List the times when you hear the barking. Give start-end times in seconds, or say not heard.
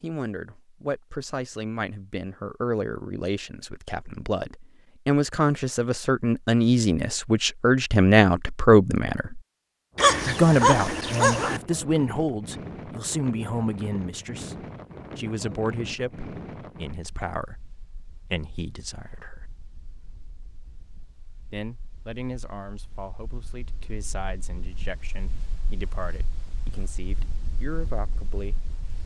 9.9-11.6.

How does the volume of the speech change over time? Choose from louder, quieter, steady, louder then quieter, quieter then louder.
louder then quieter.